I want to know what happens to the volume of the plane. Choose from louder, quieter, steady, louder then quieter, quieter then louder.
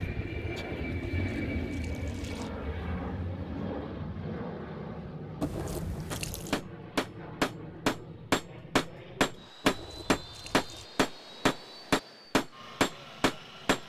quieter.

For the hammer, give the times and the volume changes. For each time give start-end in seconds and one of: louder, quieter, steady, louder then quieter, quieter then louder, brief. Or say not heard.
6.1-13.8 steady.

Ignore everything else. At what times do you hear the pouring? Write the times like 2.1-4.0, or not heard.
1.0-2.5, 5.4-6.6, 9.6-10.9.